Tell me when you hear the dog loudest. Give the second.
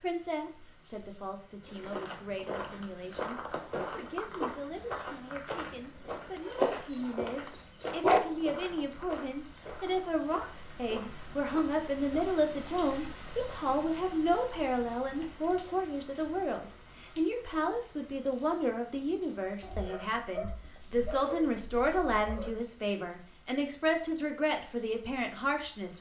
8 s.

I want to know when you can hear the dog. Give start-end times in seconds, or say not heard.
6.2-8.2, 19.6-22.5.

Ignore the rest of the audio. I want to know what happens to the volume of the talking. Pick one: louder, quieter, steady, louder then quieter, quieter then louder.
louder.